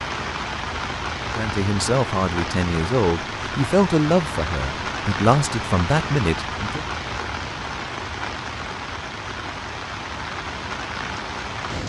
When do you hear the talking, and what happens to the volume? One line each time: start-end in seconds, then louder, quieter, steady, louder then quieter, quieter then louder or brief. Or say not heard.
1.4-6.8 steady.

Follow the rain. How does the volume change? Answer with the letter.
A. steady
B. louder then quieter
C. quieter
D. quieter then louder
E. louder
A.